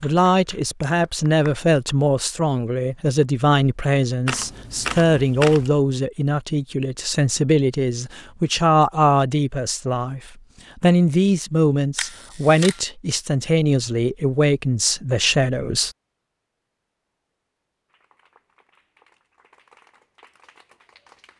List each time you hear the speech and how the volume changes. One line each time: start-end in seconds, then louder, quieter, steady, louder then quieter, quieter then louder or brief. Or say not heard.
0.0-15.9 steady.